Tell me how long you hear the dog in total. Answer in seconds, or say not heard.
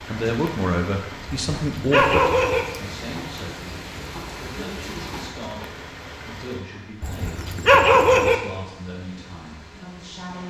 3 s.